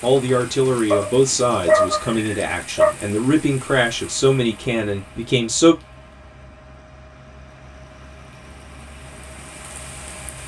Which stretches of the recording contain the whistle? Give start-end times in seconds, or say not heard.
not heard.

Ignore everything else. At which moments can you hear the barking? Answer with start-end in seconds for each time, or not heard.
0.9-2.9.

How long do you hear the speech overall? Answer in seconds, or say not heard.
6 s.